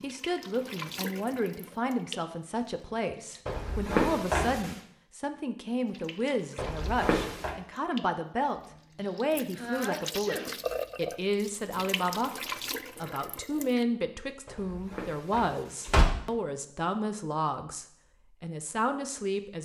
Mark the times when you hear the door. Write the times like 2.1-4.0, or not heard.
3.5-4.8, 6.5-7.5, 14.4-16.1.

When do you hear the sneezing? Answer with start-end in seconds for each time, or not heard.
9.0-10.6.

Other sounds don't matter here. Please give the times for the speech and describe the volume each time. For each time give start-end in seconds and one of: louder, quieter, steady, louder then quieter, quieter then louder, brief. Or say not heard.
0.0-19.6 steady.